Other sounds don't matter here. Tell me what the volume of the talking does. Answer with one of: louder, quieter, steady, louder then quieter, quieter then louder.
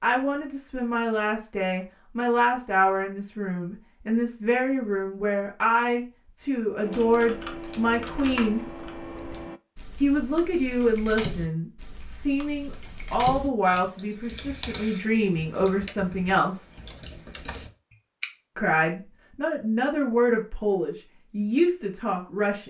steady.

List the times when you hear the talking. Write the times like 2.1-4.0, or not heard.
0.0-8.7, 10.0-16.6, 18.6-22.6.